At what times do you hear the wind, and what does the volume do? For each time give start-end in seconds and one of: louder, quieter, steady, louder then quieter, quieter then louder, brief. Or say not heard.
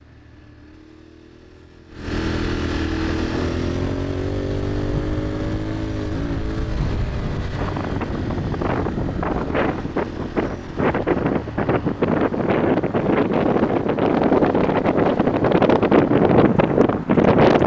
3.0-17.6 louder.